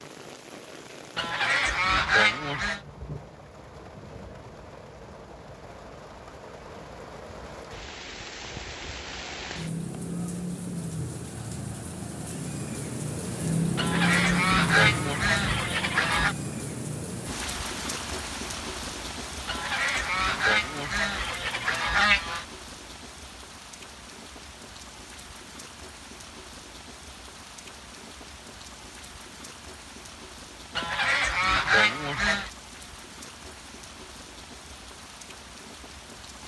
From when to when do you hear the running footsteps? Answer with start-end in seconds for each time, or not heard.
not heard.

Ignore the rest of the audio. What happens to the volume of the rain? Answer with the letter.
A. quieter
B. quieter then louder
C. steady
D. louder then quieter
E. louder
D.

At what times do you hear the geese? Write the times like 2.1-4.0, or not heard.
1.1-2.8, 13.8-16.4, 19.4-22.4, 30.8-32.5.